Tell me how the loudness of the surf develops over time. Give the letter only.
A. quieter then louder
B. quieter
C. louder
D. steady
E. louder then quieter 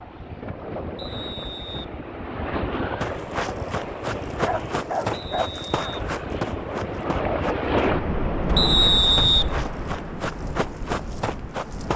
E.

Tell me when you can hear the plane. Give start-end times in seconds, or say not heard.
not heard.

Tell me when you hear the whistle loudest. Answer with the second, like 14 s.
9 s.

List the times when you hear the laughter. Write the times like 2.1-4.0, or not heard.
not heard.